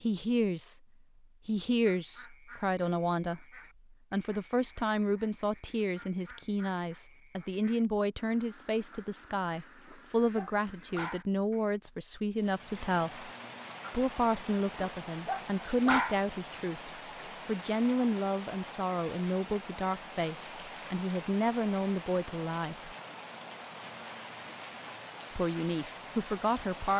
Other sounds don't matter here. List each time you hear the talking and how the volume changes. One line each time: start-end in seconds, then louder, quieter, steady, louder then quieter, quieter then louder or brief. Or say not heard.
0.0-0.8 brief
1.4-13.3 steady
13.9-22.9 steady
25.4-26.9 brief.